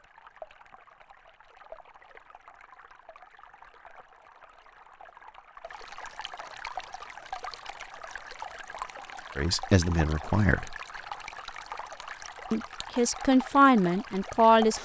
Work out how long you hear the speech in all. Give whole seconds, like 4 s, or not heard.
4 s.